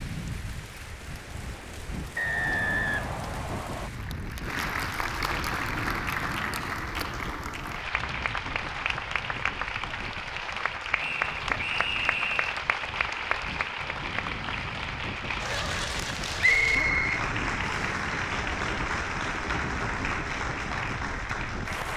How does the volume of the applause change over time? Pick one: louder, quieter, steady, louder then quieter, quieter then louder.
louder.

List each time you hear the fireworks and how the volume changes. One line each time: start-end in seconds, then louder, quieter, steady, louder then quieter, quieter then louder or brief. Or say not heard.
not heard.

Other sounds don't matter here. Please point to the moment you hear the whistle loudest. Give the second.
17 s.